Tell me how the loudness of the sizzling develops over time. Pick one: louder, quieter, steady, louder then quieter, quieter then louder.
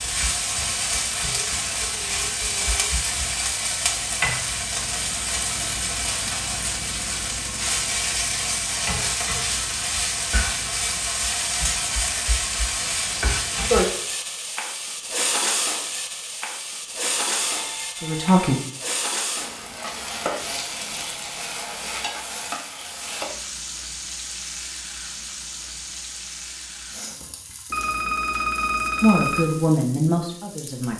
quieter.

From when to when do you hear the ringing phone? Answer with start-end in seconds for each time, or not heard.
1.2-2.9, 17.4-18.6, 27.7-29.5.